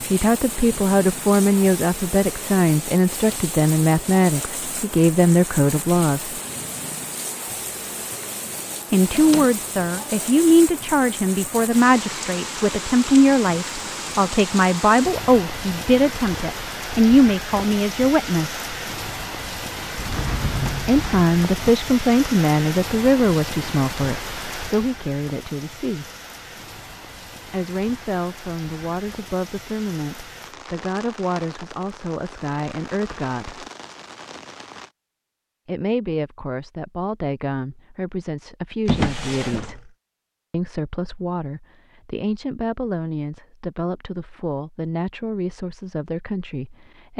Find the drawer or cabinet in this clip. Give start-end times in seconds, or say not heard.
9.1-9.6, 19.9-21.8, 38.9-39.9.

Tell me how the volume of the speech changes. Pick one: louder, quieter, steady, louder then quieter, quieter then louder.
quieter.